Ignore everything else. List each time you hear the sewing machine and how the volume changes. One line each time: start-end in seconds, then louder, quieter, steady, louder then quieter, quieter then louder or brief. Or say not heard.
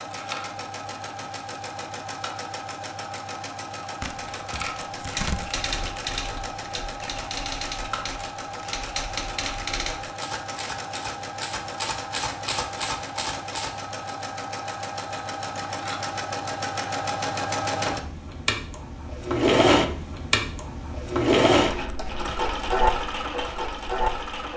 0.0-24.5 louder.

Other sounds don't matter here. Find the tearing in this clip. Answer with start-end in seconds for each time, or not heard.
4.0-5.5.